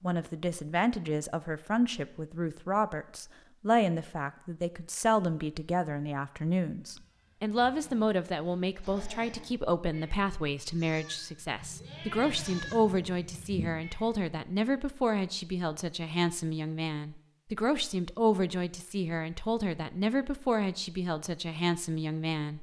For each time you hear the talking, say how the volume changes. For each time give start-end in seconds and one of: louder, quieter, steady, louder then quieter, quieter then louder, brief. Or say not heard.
0.0-22.5 steady.